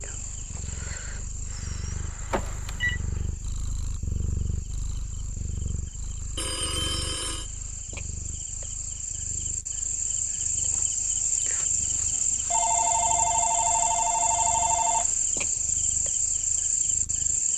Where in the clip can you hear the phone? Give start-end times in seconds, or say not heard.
2.3-3.0, 6.3-7.5, 12.5-15.1.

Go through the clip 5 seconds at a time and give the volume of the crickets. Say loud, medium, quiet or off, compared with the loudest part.
quiet, medium, loud, loud.